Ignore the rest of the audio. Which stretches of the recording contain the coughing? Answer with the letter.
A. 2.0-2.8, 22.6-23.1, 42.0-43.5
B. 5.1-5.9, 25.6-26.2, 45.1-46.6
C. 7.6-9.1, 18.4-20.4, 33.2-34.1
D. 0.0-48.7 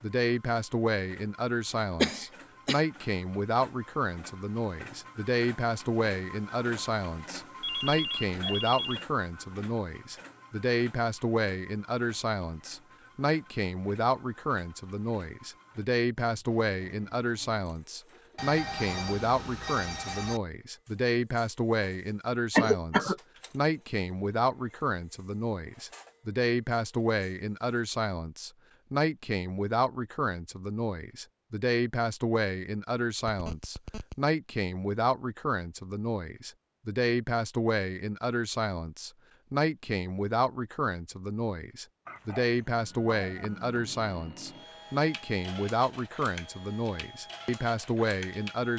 A.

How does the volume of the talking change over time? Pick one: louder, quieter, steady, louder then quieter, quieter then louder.
steady.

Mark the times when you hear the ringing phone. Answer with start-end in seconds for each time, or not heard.
7.6-9.1, 18.4-20.4, 33.2-34.1.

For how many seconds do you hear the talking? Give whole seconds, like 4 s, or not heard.
49 s.